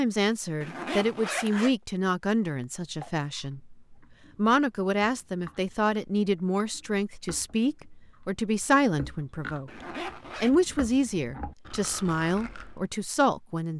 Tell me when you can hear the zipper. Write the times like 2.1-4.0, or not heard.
0.6-1.8, 9.7-10.6.